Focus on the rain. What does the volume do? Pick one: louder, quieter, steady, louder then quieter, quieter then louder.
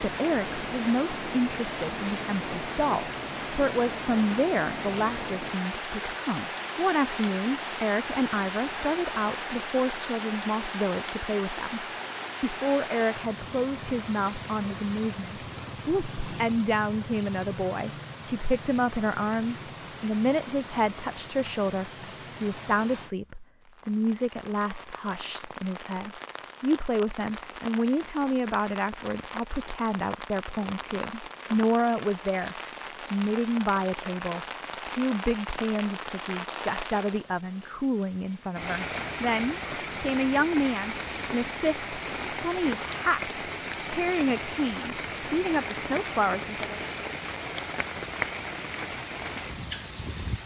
quieter then louder.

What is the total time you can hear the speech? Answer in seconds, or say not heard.
47 s.